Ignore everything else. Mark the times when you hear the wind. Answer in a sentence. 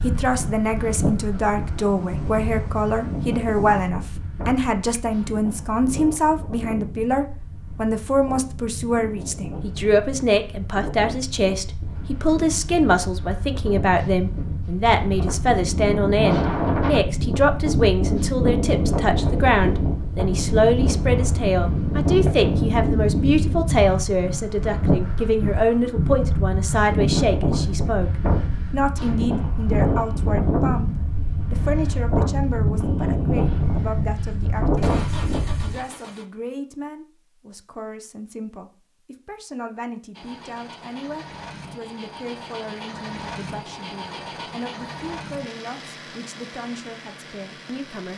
You can hear the wind from 0.0 to 35.8 s.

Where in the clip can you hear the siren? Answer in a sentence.
The siren can't be heard in this clip.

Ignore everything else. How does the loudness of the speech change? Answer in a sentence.
The loudness of the speech goes down.